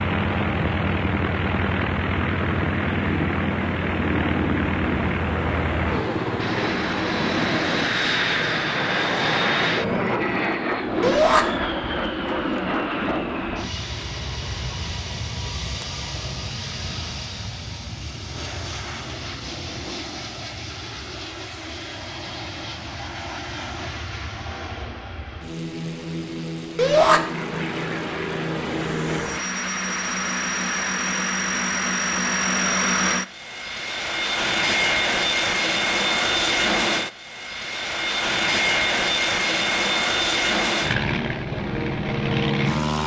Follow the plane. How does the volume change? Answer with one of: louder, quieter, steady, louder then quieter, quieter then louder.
quieter then louder.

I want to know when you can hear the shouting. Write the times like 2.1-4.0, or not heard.
11.0-11.4, 26.8-27.2.